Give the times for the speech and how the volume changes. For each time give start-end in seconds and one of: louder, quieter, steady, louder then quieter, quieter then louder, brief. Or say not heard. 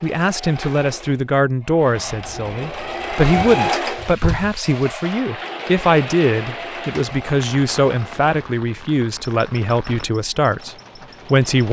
0.0-11.6 steady.